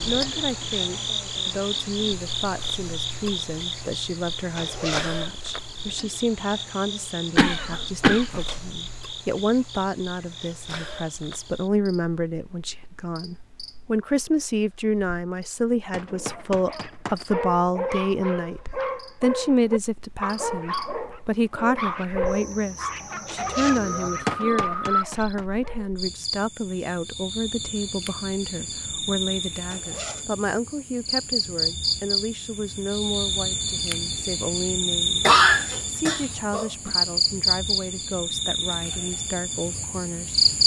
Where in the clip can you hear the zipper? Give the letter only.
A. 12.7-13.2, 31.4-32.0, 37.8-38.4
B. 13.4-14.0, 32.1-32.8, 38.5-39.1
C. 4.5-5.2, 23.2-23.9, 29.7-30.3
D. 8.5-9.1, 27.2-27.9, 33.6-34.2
C.